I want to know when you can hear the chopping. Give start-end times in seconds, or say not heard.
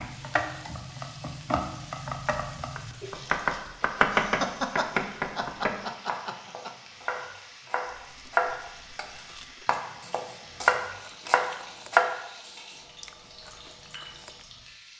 2.8-12.2.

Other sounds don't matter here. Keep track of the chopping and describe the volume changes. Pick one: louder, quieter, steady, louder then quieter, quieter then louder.
quieter then louder.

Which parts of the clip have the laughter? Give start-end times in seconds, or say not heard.
4.1-6.8.